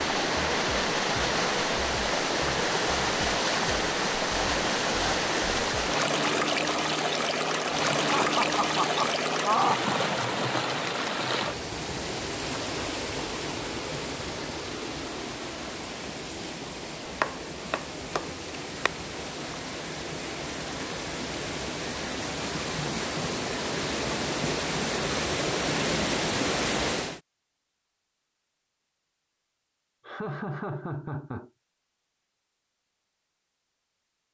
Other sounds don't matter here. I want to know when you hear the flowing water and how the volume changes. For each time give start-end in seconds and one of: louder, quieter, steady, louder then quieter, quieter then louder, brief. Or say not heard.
0.0-27.2 quieter then louder.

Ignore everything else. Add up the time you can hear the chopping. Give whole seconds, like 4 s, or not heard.
2 s.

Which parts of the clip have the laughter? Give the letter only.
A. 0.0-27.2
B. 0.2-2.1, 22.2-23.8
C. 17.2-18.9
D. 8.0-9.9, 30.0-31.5
D.